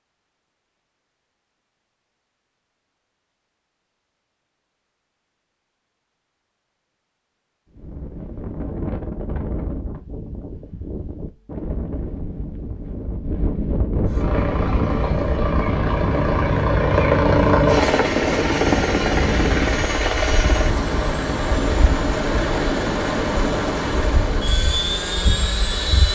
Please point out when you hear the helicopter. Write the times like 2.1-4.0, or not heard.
14.1-26.1.